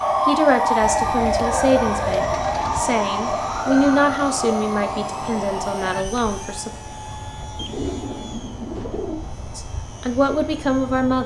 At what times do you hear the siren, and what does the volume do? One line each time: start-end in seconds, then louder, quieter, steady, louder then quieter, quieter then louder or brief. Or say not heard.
0.0-6.0 quieter.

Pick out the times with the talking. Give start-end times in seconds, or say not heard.
0.2-6.8, 9.6-11.2.